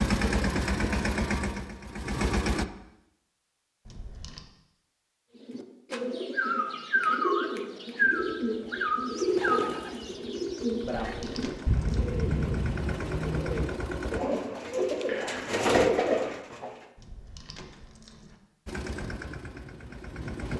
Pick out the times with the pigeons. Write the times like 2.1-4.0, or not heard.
5.5-16.8.